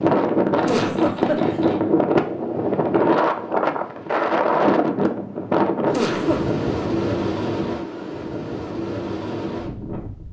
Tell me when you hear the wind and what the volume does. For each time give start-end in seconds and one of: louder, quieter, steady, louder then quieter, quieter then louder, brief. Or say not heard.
0.0-10.2 quieter.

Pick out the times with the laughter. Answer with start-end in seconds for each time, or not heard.
0.6-1.6, 5.9-6.5.